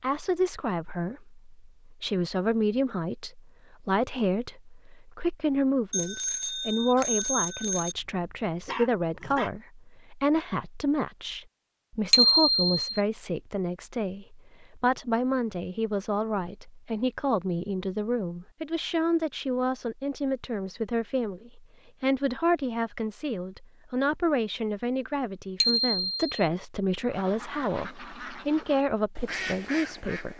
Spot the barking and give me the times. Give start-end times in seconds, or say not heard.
8.0-9.5.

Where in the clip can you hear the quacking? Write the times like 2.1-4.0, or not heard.
27.1-30.3.